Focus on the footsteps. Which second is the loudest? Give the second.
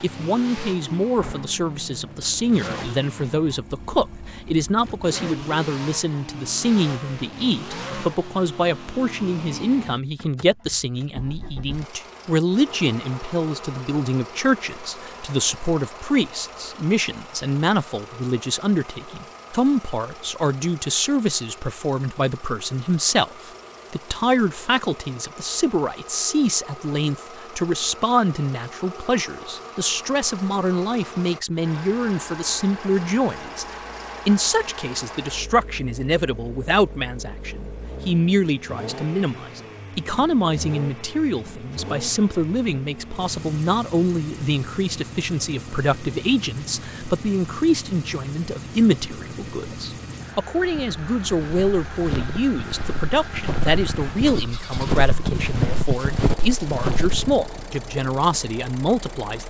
56 s.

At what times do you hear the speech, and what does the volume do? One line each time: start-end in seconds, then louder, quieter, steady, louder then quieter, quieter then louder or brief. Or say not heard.
0.0-33.6 steady
34.2-59.4 steady.